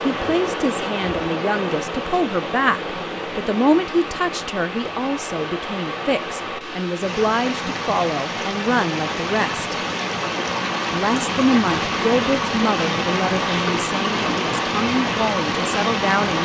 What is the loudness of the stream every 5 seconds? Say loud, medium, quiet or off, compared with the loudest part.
medium, medium, loud, loud.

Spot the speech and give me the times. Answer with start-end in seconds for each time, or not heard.
0.0-9.7, 10.9-16.4.